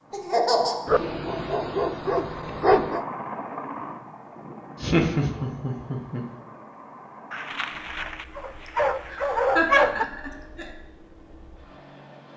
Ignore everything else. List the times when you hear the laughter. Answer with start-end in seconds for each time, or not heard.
0.1-0.8, 4.8-6.2, 9.1-10.7.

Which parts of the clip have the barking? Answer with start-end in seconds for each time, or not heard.
0.8-3.0, 7.3-10.1.